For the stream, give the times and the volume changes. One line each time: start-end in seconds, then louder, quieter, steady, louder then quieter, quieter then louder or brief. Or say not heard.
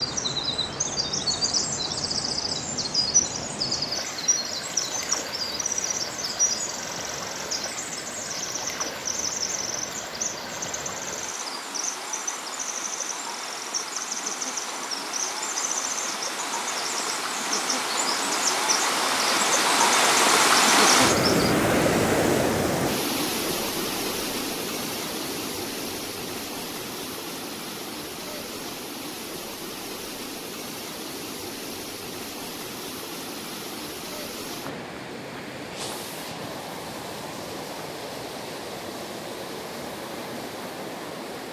0.0-41.4 louder then quieter.